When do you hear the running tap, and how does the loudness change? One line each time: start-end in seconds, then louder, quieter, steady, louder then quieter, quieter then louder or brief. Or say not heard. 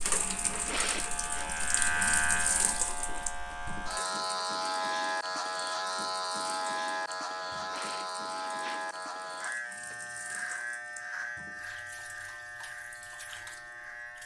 0.0-14.2 quieter.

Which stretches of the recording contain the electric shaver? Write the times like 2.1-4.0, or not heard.
0.0-14.2.